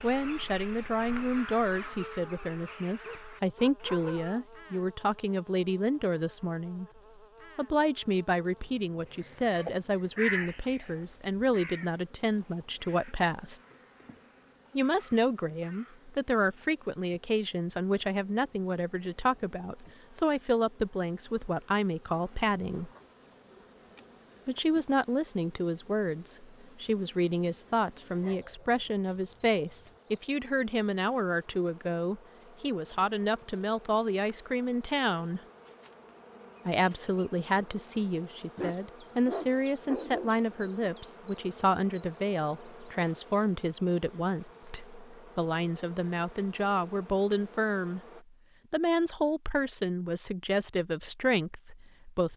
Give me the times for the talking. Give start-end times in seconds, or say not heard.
0.0-6.8, 7.5-13.6, 14.8-22.9, 24.4-35.4, 36.6-48.0, 48.7-52.3.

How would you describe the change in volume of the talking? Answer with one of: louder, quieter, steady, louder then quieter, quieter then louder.
steady.